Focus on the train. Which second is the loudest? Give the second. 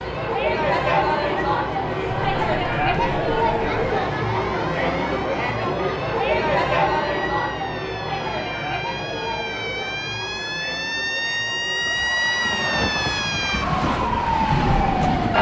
15 s.